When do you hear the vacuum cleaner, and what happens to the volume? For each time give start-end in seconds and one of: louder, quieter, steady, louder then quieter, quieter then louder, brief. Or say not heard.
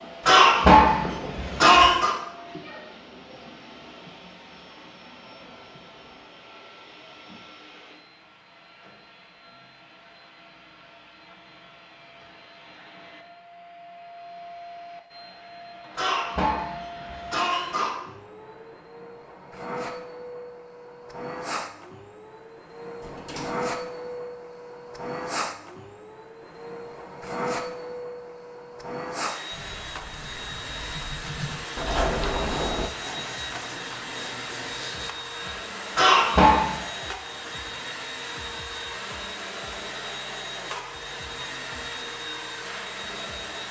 0.0-43.6 louder.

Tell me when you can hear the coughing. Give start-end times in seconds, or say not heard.
0.2-2.1, 15.9-17.9, 36.0-36.8.